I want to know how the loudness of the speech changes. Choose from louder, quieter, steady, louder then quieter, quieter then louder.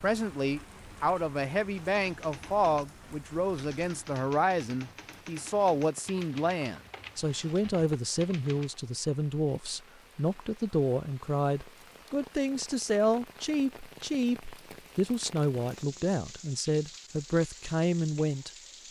steady.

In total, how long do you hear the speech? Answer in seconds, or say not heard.
19 s.